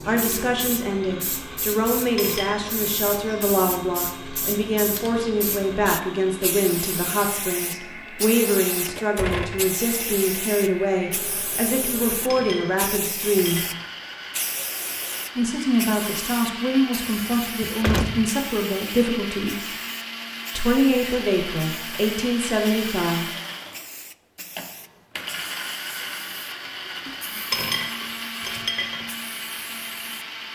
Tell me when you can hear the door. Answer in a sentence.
The door can be heard from 8.8 to 9.7 s and from 17.1 to 18.3 s.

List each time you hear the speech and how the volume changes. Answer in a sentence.
You can hear the speech from 0.1 to 13.7 s, at a steady volume; from 15.3 to 19.8 s, at a steady volume; and briefly from 20.6 to 23.3 s.